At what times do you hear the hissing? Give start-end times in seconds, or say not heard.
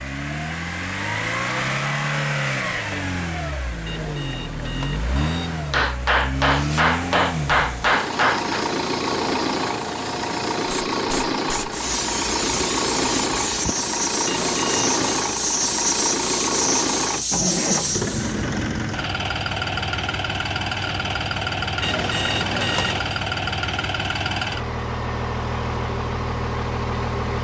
6.4-18.4.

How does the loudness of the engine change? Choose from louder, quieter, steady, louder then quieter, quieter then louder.
steady.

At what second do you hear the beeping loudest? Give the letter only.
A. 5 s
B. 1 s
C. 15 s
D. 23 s
D.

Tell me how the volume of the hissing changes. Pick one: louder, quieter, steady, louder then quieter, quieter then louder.
louder.